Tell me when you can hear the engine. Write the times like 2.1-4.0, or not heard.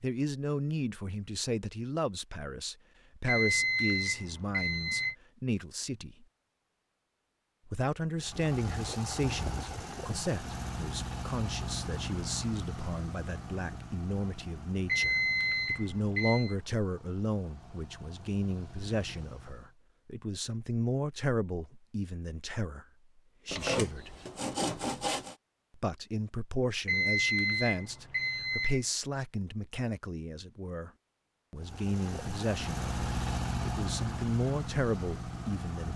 8.2-19.8, 31.6-35.9.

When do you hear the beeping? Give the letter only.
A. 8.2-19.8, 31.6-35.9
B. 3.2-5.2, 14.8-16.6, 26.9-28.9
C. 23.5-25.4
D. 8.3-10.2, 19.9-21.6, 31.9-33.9
B.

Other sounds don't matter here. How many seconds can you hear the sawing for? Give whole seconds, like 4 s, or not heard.
2 s.